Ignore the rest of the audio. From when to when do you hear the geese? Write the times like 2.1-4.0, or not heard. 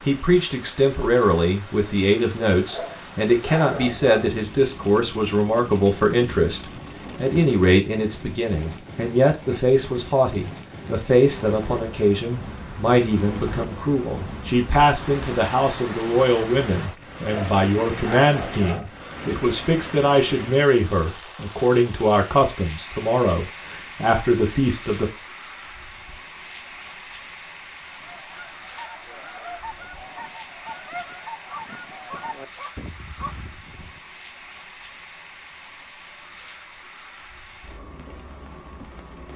27.9-34.0.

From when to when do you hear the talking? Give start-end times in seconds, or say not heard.
0.0-25.1.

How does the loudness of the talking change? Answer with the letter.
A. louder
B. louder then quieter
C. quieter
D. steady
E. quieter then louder
D.